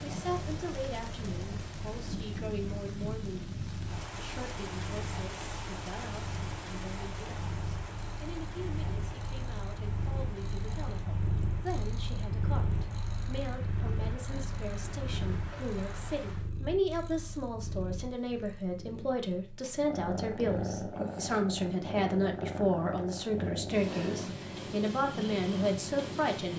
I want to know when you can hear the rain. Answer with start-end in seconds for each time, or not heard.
0.0-16.5.